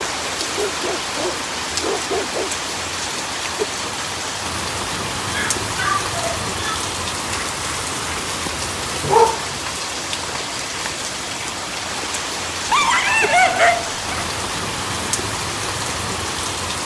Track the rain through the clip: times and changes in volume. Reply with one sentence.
The rain can be heard from 0.0 to 16.8 s, at a steady volume.